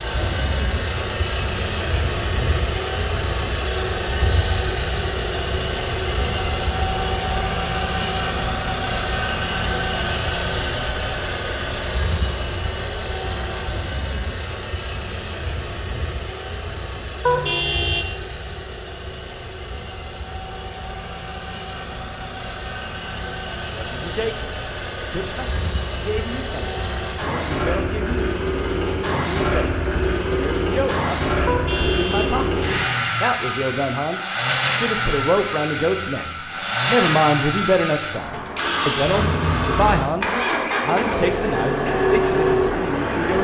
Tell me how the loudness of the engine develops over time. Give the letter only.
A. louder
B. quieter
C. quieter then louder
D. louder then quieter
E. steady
C.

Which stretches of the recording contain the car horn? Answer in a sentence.
You can hear the car horn from 17.2 to 18.1 s and from 31.4 to 32.5 s.